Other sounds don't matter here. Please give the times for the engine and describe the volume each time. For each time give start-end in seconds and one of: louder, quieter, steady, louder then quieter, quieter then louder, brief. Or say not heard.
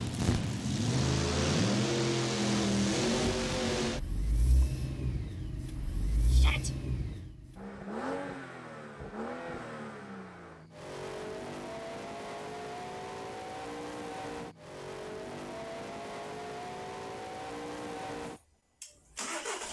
0.0-19.6 quieter.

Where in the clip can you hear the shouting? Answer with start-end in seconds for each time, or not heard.
6.2-6.7.